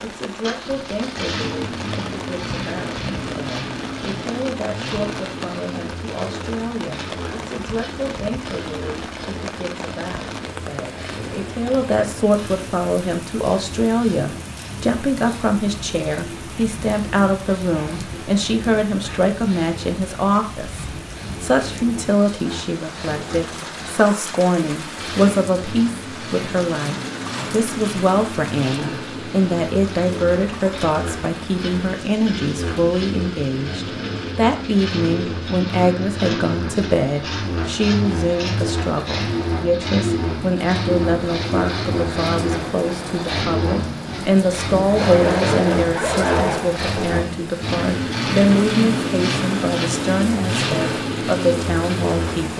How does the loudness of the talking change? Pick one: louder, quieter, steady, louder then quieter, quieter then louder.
louder.